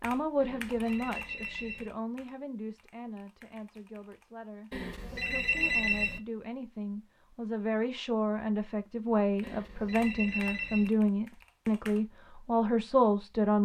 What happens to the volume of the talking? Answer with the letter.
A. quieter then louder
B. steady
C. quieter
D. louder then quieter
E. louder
A.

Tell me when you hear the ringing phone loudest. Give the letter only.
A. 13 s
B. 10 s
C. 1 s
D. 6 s
D.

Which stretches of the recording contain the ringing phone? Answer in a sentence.
The ringing phone can be heard from 0.4 to 1.9 s, from 4.7 to 6.2 s and from 9.4 to 10.9 s.